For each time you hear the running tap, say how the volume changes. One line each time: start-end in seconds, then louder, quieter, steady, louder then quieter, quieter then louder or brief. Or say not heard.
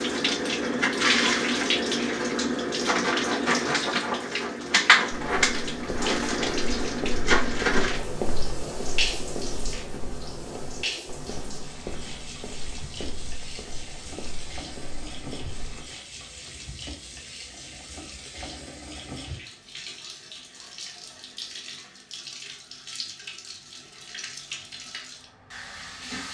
0.0-26.3 quieter.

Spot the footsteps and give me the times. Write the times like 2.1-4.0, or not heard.
5.1-15.9.